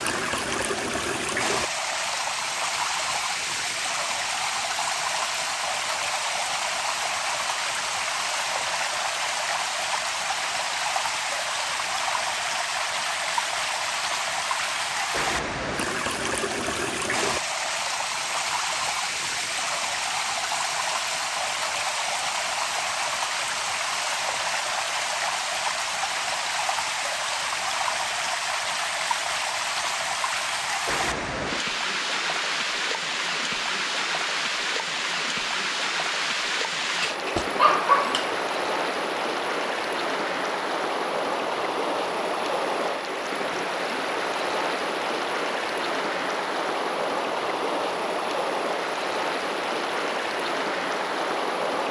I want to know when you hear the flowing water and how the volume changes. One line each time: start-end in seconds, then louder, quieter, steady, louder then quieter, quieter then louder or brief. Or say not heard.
0.0-51.8 steady.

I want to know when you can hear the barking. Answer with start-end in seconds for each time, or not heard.
37.0-38.4.